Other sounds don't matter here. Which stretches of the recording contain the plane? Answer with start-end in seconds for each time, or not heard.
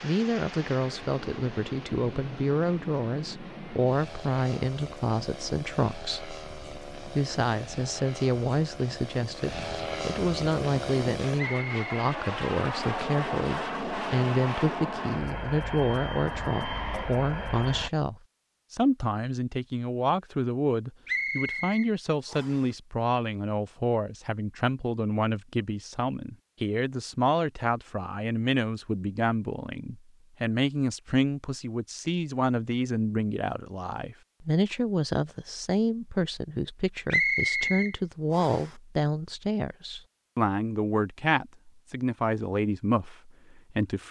0.0-17.9.